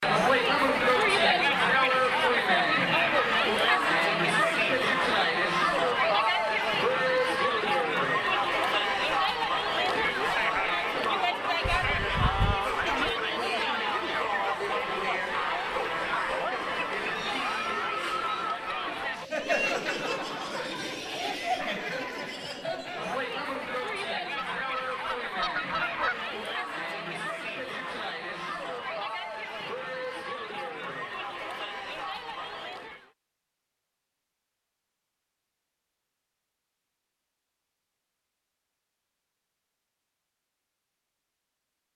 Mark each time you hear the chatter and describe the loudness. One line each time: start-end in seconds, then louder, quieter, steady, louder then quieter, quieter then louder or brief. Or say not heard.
0.0-33.1 quieter.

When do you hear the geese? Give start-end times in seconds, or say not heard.
11.6-13.2, 24.4-26.2.